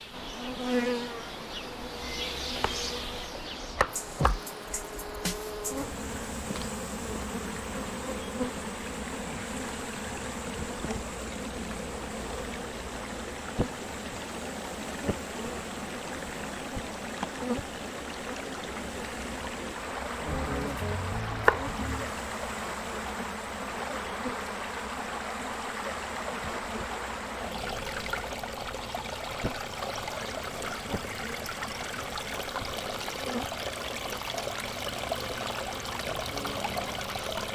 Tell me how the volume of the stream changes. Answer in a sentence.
The loudness of the stream goes up.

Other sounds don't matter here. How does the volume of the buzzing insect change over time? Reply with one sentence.
The loudness of the buzzing insect goes down.